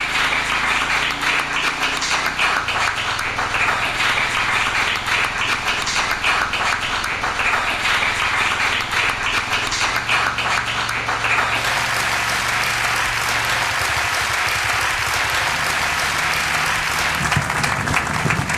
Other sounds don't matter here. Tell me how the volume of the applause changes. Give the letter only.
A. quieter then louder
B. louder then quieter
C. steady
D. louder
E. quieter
C.